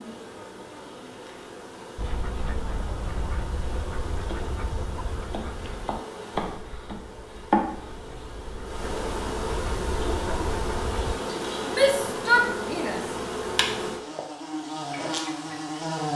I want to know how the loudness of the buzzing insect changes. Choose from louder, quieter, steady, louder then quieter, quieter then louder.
louder.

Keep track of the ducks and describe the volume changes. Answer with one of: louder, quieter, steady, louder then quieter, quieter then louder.
quieter then louder.